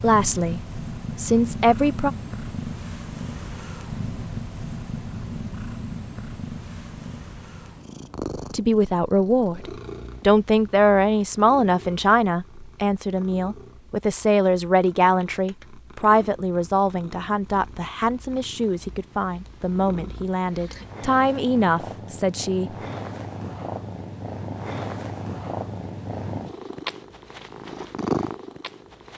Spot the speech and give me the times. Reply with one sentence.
You can hear the speech from 0.0 to 2.1 s and from 8.5 to 22.7 s.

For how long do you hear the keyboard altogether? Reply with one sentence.
The keyboard can't be heard in this clip.